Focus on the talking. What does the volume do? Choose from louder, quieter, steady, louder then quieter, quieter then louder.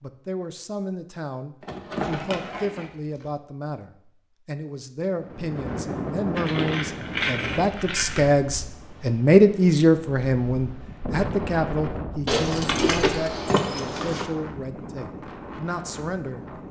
louder then quieter.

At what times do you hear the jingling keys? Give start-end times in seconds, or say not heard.
1.6-3.3, 6.3-8.3, 12.2-14.2.